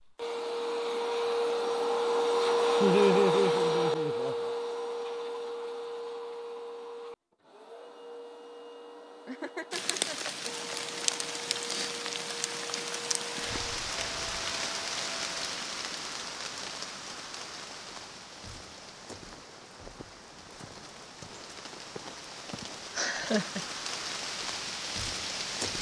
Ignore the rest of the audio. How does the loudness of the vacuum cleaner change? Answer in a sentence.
The loudness of the vacuum cleaner goes down.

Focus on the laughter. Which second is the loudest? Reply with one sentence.
The volume of the laughter peaks at 3 seconds.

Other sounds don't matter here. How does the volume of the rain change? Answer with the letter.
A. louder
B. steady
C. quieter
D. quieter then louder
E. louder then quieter
D.